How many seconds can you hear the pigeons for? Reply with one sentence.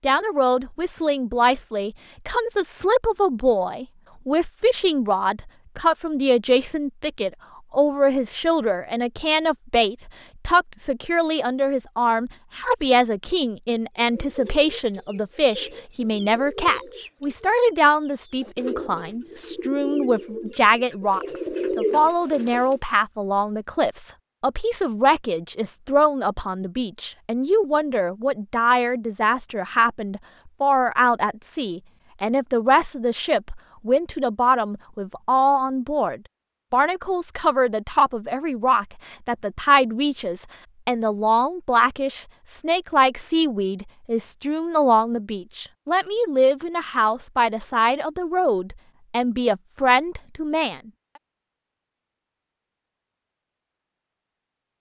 You can hear the pigeons for 9 seconds altogether.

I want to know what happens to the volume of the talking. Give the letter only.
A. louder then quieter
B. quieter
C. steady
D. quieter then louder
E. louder
C.